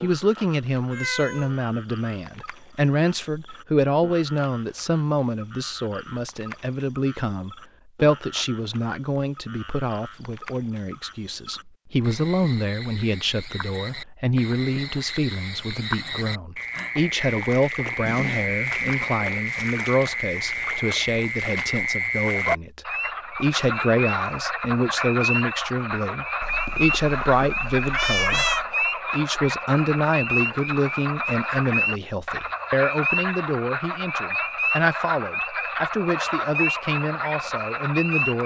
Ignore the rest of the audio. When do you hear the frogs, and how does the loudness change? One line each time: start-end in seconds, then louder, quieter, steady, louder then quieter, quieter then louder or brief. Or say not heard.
0.0-38.4 louder.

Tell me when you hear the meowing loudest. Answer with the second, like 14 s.
28 s.